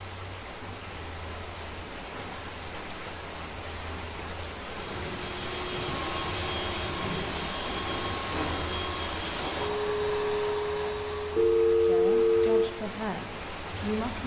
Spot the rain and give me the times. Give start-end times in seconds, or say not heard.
0.0-14.2.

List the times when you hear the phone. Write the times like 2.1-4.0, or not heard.
11.3-12.7.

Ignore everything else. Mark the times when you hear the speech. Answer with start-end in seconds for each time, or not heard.
11.8-14.2.